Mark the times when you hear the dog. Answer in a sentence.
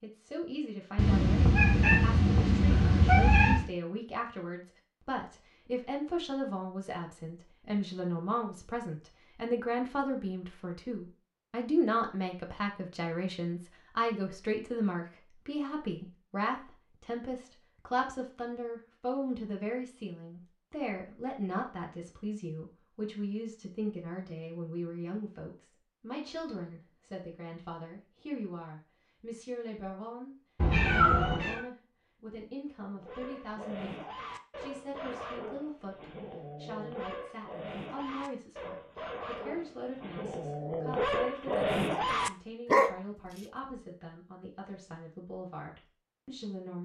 The dog can be heard from 32.9 to 43.4 s.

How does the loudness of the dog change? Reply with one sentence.
The loudness of the dog goes up.